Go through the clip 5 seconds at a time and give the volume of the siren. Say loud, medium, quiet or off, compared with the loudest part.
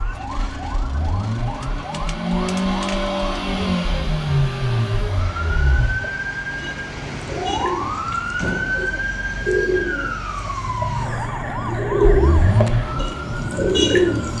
medium, loud, loud.